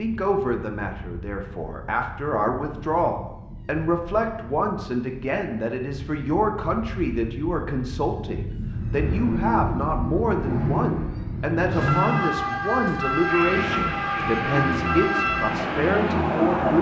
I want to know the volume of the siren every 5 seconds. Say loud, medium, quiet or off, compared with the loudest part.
quiet, medium, loud, loud.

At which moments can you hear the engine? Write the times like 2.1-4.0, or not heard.
8.7-16.7.